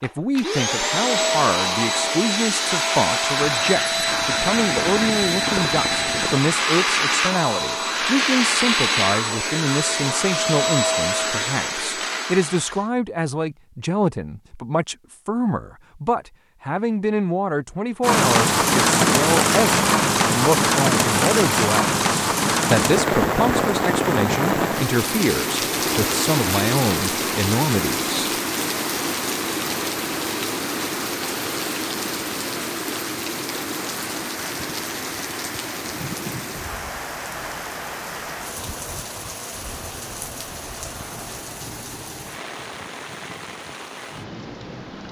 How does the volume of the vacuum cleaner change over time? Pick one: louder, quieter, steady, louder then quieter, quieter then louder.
steady.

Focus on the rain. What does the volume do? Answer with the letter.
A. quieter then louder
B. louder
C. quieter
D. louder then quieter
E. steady
C.